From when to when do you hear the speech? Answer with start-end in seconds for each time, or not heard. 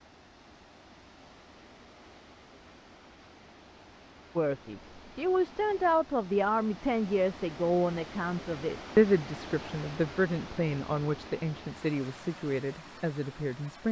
4.3-13.8.